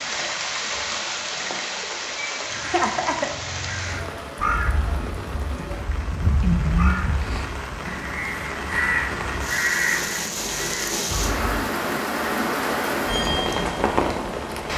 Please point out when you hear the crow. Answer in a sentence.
You can hear the crow from 2.5 to 11.7 s.